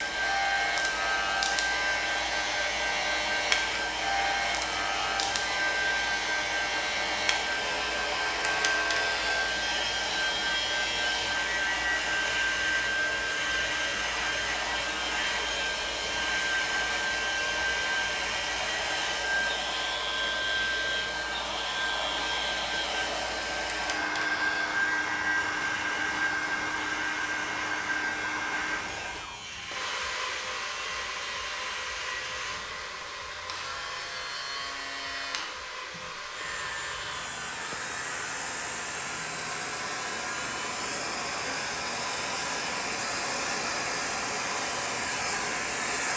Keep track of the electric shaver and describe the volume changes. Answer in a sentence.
The volume of the electric shaver goes down.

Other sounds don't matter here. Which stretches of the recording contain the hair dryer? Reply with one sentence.
You can hear the hair dryer from 0.0 to 46.1 s.